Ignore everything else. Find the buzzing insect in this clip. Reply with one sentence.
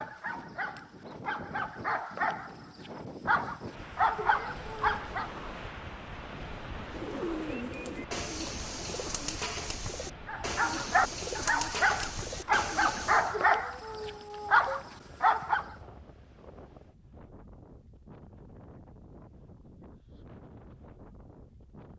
The buzzing insect can't be heard in this clip.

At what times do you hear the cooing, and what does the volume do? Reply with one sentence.
The cooing can be heard from 6.8 to 13.3 s, at a steady volume.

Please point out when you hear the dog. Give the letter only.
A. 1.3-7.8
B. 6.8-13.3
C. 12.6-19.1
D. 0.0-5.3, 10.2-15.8
D.